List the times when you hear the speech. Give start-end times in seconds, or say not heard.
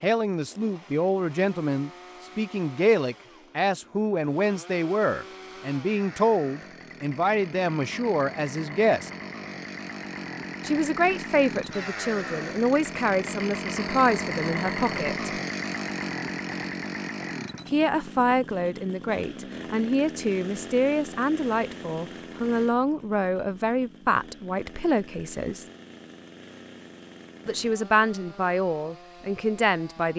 0.0-9.1, 10.7-15.3, 17.6-25.6, 27.4-30.1.